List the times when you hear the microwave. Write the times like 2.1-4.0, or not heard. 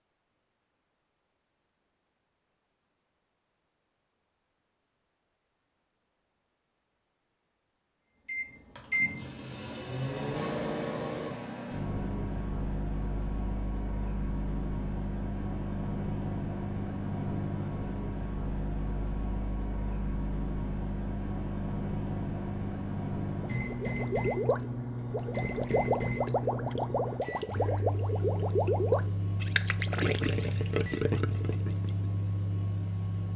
8.2-33.3.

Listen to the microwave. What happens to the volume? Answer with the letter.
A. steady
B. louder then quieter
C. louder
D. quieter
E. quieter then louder
A.